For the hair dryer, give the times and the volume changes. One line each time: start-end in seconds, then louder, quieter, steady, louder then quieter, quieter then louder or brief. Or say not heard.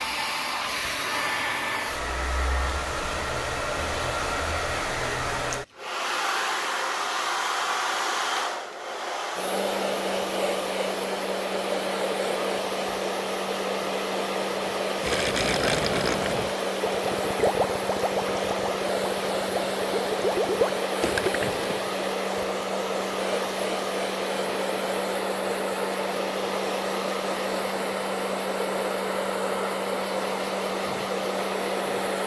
0.0-32.2 steady.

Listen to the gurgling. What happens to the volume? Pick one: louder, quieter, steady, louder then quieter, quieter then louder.
quieter then louder.